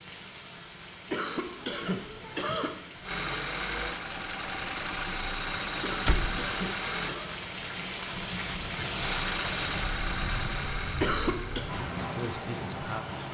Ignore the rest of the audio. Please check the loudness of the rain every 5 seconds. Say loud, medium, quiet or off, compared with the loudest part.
medium, loud, loud.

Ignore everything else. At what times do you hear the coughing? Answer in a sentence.
The coughing can be heard from 1.1 to 2.8 s, from 5.8 to 7.3 s and from 10.9 to 11.7 s.